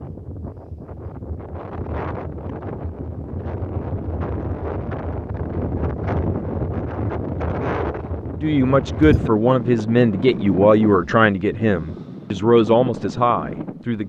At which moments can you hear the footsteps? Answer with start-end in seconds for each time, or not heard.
not heard.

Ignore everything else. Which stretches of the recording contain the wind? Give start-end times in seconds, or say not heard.
0.0-14.0.